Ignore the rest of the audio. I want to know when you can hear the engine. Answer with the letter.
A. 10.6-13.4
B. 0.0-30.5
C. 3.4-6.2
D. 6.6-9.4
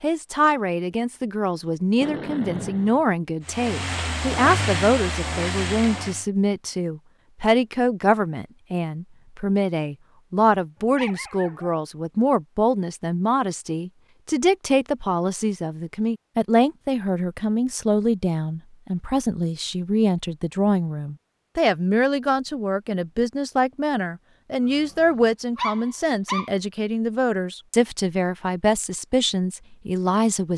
C.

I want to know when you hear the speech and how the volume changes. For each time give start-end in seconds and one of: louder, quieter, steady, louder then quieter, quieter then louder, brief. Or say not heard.
0.0-30.5 steady.